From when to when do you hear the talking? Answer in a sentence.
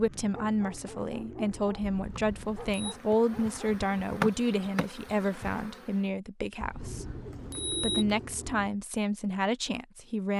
The talking can be heard from 0.0 to 7.0 s and from 7.7 to 10.3 s.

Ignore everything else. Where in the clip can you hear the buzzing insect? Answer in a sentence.
You can hear the buzzing insect from 2.1 to 6.1 s.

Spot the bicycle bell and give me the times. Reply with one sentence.
You can hear the bicycle bell from 1.8 to 3.0 s and from 6.6 to 8.1 s.